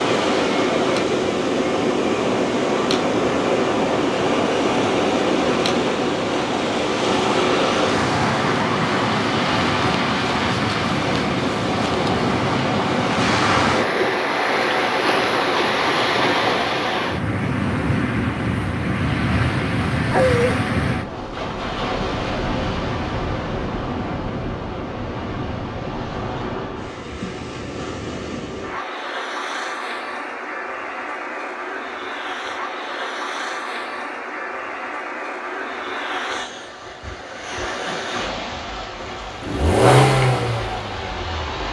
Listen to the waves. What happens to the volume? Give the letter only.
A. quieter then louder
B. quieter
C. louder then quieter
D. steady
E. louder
B.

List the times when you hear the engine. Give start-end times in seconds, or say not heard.
39.0-41.6.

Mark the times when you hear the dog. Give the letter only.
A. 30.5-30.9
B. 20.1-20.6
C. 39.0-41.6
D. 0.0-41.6
B.